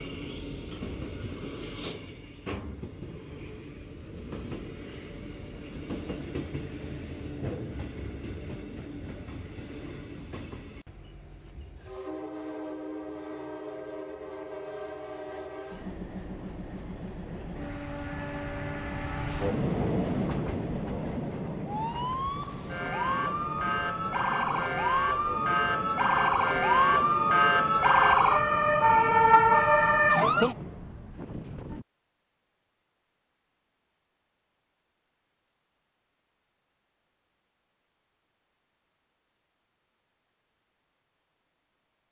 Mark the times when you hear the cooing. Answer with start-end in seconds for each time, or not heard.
not heard.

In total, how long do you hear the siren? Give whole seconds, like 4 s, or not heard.
9 s.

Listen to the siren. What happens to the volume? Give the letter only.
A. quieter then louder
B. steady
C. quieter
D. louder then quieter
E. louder
E.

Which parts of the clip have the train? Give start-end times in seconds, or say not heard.
0.0-31.9.